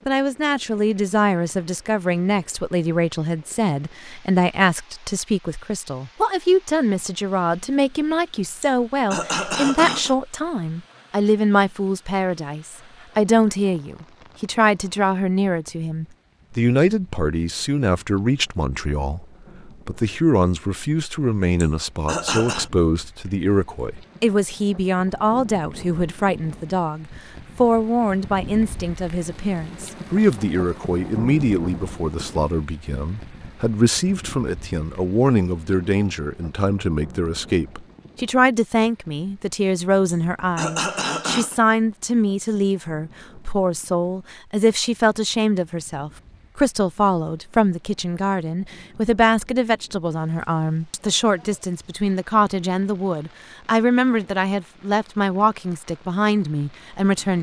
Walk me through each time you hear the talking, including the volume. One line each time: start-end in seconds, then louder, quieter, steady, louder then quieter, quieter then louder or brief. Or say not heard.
0.1-57.3 steady.